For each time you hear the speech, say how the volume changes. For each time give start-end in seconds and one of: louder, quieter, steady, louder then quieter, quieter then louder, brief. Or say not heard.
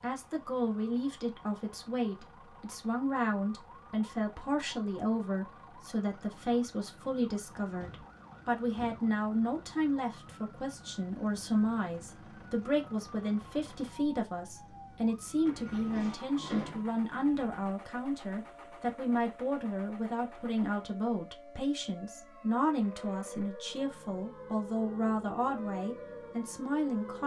0.0-27.2 steady.